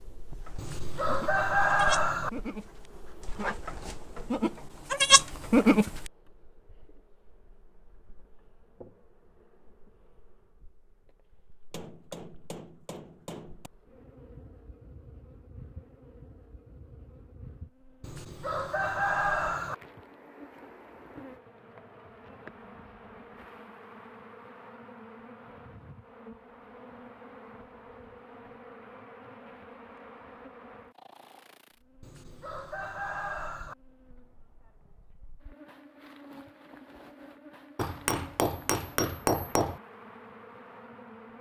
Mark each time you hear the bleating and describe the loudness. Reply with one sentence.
The bleating can be heard from 0.4 to 6.1 s, getting louder.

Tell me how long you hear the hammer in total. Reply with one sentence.
The hammer can be heard for 4 seconds in total.